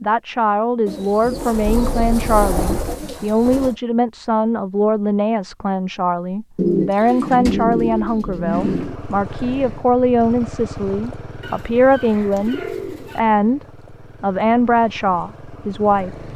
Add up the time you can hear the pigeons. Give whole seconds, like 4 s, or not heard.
7 s.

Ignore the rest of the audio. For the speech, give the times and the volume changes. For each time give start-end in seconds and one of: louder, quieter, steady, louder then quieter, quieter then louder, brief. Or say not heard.
0.0-16.1 steady.